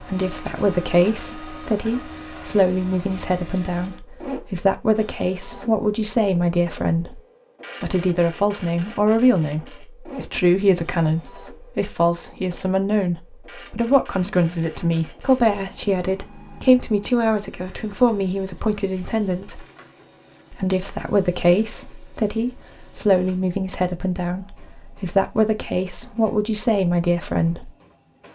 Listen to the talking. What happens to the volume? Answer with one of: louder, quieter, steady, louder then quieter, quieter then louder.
steady.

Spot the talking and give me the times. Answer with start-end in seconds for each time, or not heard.
0.0-7.2, 7.8-19.6, 20.5-27.7.